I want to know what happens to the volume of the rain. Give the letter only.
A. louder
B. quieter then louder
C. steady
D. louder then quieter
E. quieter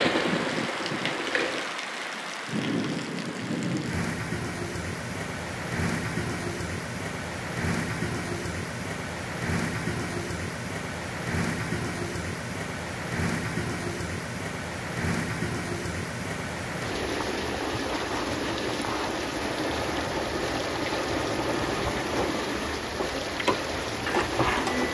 C.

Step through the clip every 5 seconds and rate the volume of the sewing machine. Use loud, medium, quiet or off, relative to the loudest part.
loud, off, off, medium, loud.